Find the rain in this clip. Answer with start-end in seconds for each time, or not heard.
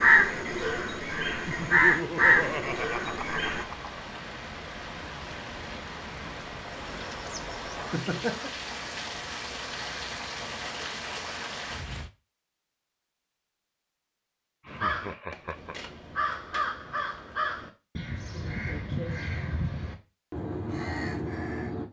0.2-12.1.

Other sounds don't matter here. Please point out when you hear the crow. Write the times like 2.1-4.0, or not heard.
0.0-3.6, 14.7-21.8.